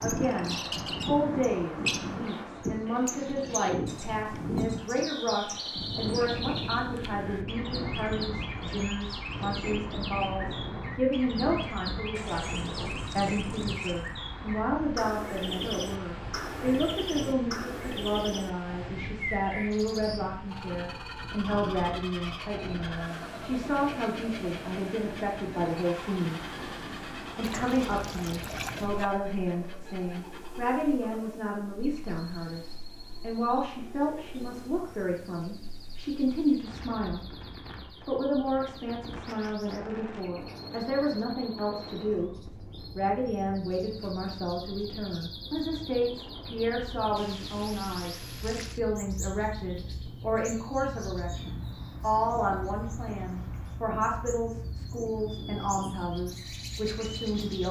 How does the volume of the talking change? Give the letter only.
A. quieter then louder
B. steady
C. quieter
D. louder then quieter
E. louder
B.